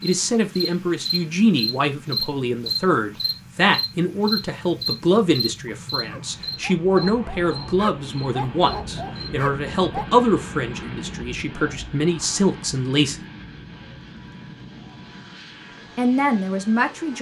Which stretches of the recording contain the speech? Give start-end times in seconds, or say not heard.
0.0-13.2, 15.9-17.1.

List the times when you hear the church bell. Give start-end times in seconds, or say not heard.
not heard.